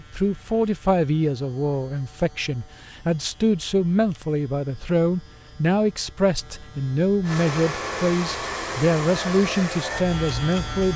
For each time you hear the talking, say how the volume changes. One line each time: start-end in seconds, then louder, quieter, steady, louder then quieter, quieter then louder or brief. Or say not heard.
0.0-10.9 steady.